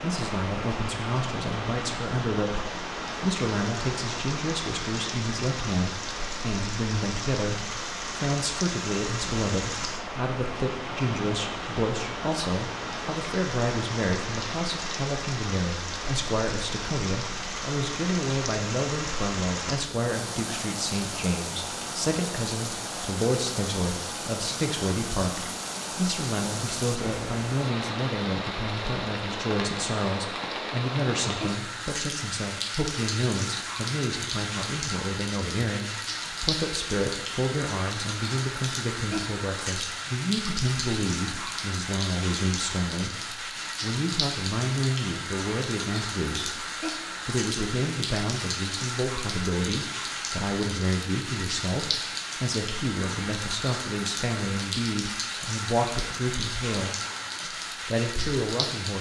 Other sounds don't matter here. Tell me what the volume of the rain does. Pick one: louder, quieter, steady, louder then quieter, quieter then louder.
steady.